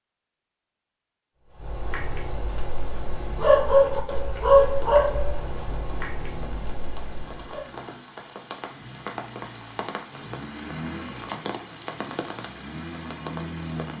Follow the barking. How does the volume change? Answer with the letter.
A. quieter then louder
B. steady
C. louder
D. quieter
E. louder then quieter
E.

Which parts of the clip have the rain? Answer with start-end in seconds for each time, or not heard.
2.8-13.9.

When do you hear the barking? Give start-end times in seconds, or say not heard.
1.4-7.7.